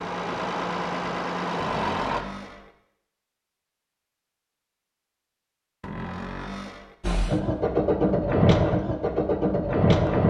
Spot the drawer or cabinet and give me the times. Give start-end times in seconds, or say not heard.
1.6-2.8, 5.8-7.0.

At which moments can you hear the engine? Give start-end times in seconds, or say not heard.
0.0-2.2, 7.0-10.2.